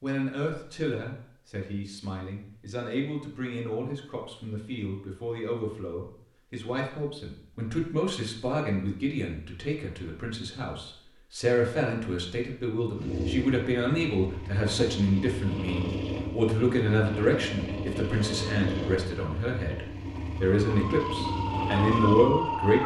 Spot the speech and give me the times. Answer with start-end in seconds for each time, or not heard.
0.0-22.8.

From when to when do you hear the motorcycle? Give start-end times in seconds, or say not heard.
12.9-22.8.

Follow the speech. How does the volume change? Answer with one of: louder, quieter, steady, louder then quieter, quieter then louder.
louder.